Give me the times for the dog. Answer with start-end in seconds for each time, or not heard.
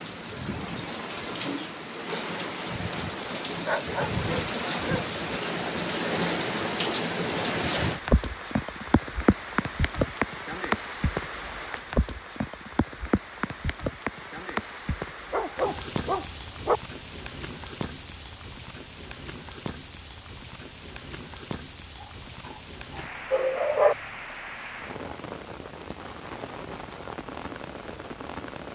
3.6-5.0, 15.3-16.8, 22.9-23.9.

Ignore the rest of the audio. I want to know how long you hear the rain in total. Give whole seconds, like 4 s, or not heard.
29 s.